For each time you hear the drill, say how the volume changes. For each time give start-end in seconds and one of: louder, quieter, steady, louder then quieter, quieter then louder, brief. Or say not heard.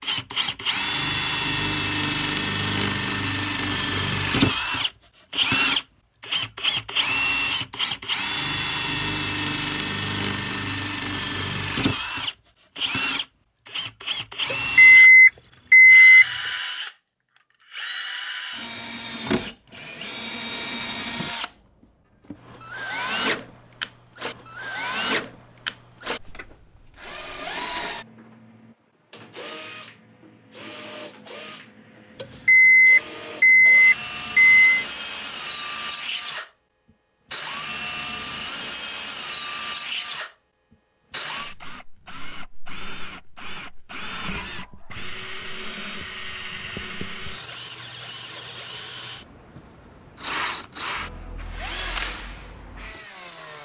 0.0-53.5 quieter.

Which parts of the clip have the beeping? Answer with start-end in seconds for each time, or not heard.
14.4-16.2, 32.1-34.9.